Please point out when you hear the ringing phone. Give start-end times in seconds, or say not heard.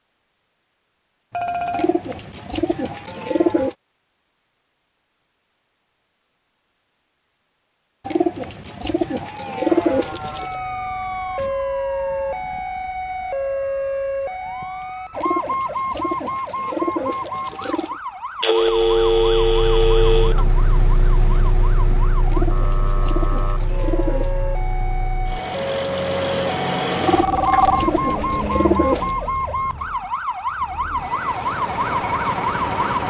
1.3-2.0, 18.4-20.4, 27.0-27.8.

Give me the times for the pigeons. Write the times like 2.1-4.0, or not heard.
1.7-3.8, 8.1-10.6, 15.2-18.0, 22.2-24.4, 26.9-29.1.